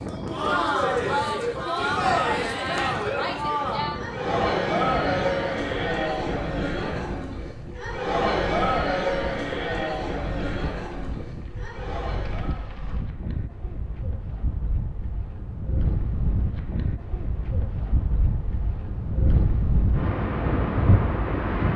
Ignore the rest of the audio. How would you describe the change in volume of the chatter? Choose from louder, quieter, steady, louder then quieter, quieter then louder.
quieter.